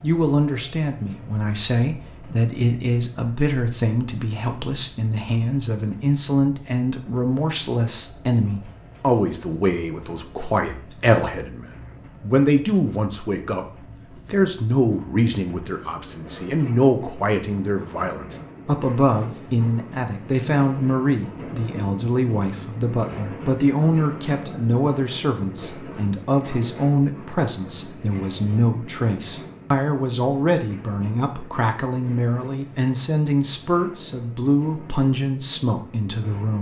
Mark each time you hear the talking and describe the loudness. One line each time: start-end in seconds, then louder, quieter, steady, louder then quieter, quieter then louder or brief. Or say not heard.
0.0-36.5 steady.